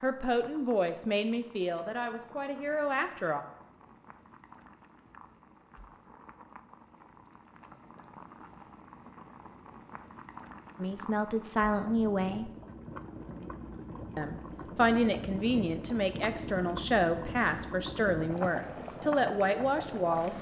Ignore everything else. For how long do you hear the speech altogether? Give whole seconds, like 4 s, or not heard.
11 s.